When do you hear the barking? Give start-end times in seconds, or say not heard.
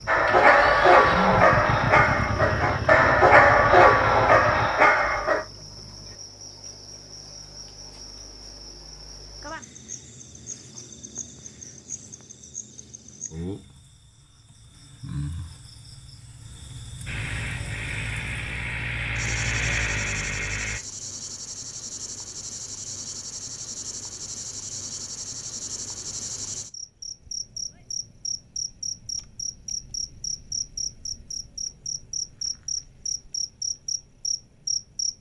0.1-5.4.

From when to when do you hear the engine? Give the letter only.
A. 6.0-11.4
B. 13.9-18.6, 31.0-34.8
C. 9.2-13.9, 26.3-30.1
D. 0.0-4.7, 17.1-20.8
D.